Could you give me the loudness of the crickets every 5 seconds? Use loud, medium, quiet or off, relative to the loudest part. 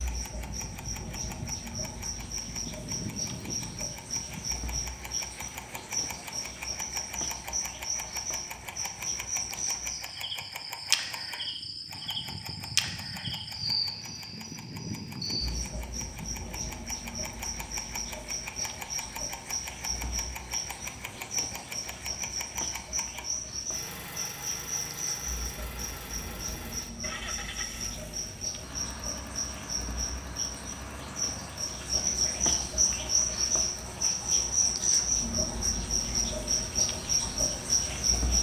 medium, medium, medium, medium, medium, medium, loud, loud.